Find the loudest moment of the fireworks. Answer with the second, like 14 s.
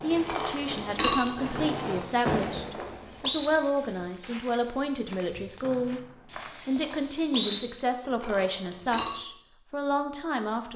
2 s.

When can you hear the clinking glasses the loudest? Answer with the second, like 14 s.
1 s.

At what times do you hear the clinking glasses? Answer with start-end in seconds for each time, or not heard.
0.1-2.1, 8.0-9.2.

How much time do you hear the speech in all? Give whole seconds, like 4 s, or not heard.
10 s.